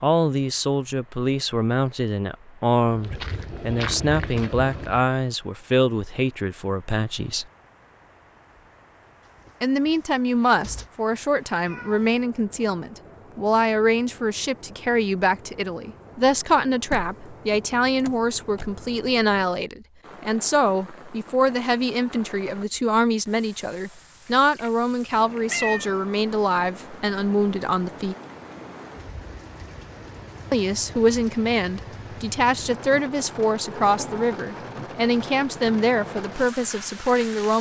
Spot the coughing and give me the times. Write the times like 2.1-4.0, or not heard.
not heard.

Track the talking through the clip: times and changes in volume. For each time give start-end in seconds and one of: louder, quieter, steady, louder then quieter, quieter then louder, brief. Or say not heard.
0.0-7.5 steady
9.6-28.1 steady
30.5-37.5 steady.